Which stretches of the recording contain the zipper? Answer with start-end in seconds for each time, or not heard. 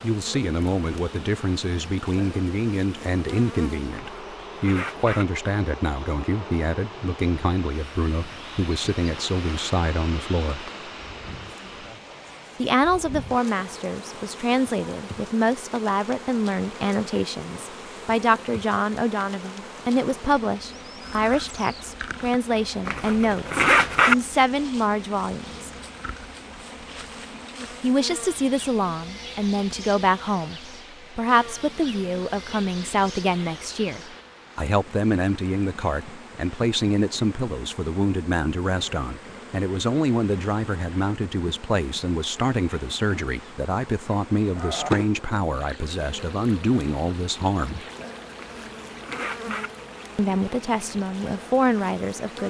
4.1-5.2, 22.9-24.1, 48.4-49.7.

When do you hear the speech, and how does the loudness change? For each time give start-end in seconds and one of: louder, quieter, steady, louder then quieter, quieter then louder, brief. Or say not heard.
0.0-10.7 steady
12.6-25.7 steady
27.8-47.8 steady
50.1-52.4 brief.